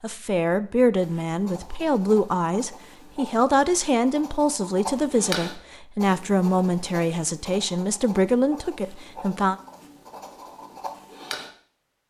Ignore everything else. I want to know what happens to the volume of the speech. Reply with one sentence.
The volume of the speech stays about the same.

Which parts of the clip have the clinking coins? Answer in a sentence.
The clinking coins can't be heard in this clip.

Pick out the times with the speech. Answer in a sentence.
The speech can be heard from 0.0 to 9.6 s.